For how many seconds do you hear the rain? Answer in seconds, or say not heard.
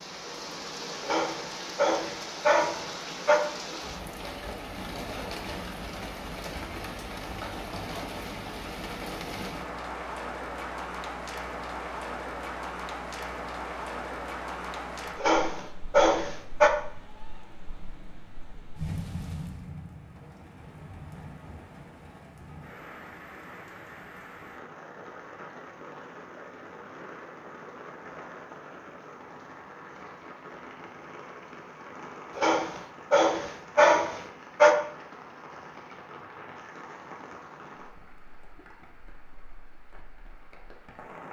41 s.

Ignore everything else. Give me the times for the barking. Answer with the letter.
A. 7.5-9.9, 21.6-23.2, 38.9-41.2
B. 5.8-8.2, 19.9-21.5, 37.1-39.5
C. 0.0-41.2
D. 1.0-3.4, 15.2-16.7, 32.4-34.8
D.